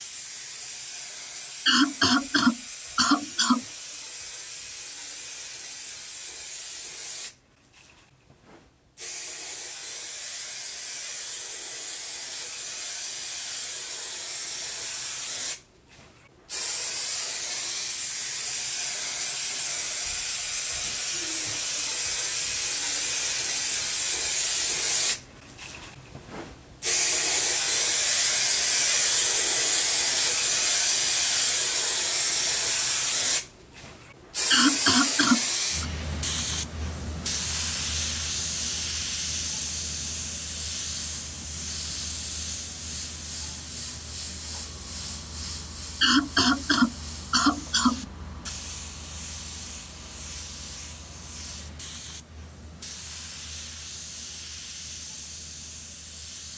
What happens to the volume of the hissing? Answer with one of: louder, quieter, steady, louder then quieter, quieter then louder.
louder then quieter.